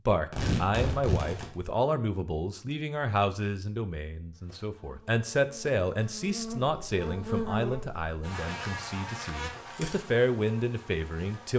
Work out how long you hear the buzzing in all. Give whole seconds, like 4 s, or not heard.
7 s.